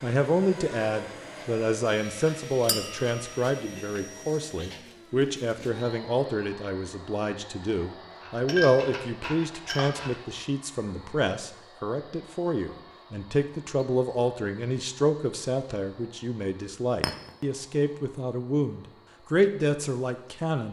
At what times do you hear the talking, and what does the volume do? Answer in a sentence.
You can hear the talking from 0.0 to 20.6 s, at a steady volume.